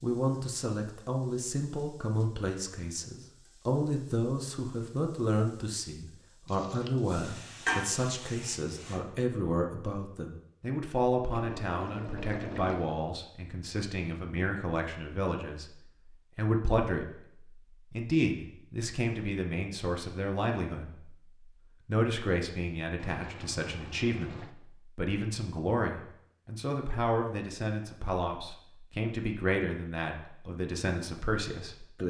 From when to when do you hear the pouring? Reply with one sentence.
The pouring can be heard from 6.5 to 7.1 s, from 11.2 to 12.9 s and from 22.9 to 24.6 s.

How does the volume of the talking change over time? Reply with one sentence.
The loudness of the talking stays about the same.